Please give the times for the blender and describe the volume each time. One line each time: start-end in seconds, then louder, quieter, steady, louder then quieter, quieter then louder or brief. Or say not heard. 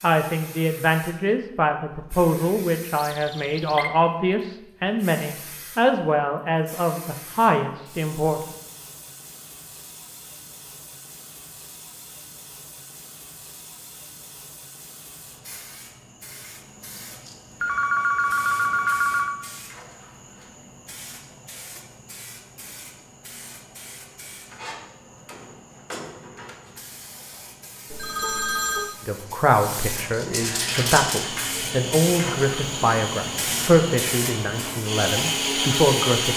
30.6-36.3 louder.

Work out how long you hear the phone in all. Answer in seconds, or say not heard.
4 s.